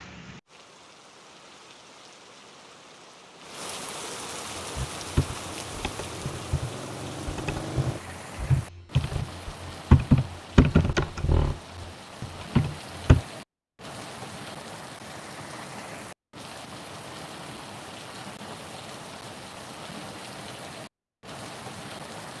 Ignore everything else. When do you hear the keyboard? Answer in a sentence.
You can hear the keyboard from 4.5 to 13.2 s.